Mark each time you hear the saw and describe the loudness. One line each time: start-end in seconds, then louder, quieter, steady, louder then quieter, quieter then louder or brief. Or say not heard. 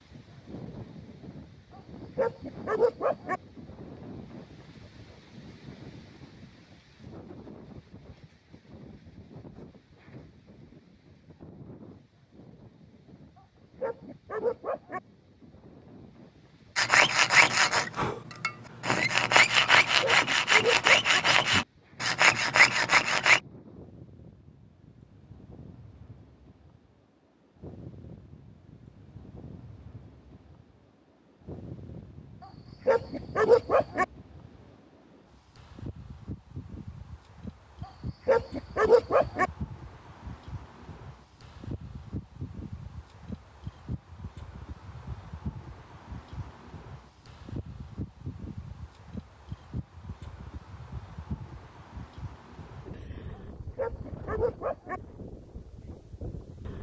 16.8-23.4 steady.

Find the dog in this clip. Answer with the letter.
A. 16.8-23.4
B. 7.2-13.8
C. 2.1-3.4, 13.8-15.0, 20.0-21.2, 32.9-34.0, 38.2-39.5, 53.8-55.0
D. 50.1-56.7
C.